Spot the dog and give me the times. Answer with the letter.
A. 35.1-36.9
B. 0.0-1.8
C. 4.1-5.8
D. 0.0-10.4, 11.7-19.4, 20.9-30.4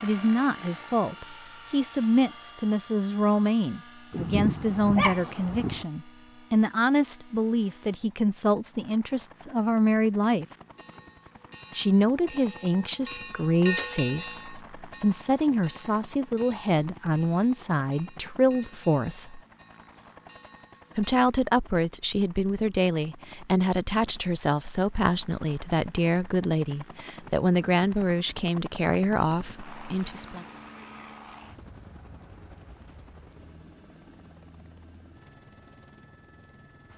C.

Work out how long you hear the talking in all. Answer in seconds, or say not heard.
28 s.